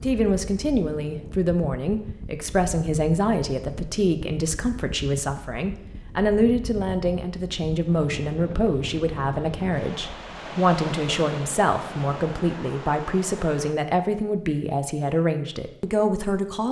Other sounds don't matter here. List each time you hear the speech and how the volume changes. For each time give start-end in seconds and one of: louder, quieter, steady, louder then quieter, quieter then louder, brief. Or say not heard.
0.0-16.6 steady.